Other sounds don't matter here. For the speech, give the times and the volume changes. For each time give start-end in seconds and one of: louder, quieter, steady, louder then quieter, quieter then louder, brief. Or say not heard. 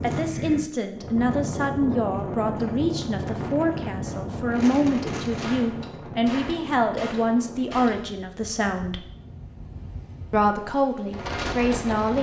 0.0-9.1 steady
10.3-12.1 brief.